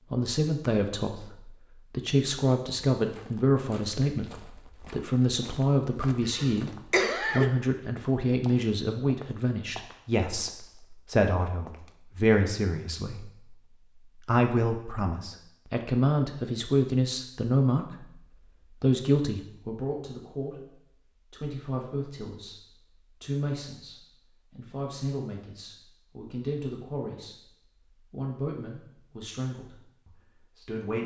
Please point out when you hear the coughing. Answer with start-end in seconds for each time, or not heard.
6.2-7.5.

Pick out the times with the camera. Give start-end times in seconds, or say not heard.
not heard.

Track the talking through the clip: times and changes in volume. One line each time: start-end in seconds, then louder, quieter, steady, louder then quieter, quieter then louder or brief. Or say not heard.
0.1-17.9 steady
18.8-27.5 steady
28.1-31.0 brief.